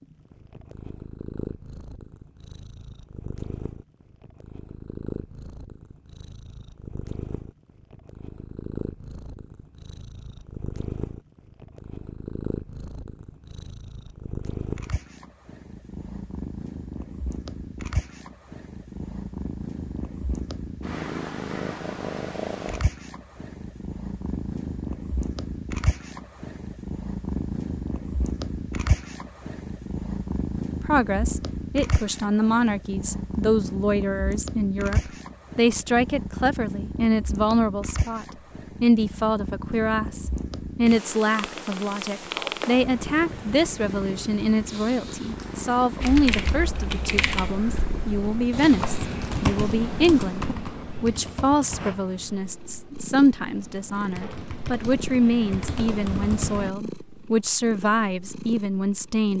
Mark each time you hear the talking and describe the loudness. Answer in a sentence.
The talking can be heard from 30.8 to 59.3 s, at a steady volume.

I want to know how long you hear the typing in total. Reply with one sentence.
The typing can be heard for 11 seconds in total.